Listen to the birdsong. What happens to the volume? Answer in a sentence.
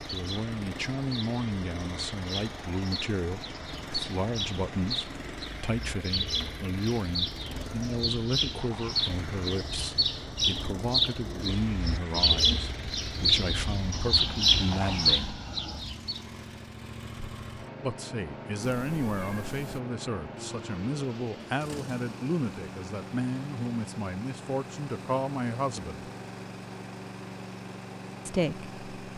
The volume of the birdsong goes up.